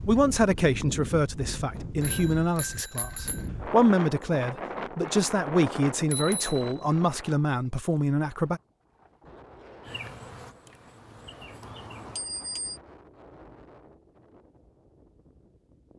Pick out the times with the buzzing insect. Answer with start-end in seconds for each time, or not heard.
9.8-12.3.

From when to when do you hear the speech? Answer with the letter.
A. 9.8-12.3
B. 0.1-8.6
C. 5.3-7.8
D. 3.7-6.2
B.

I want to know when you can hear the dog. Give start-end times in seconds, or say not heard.
not heard.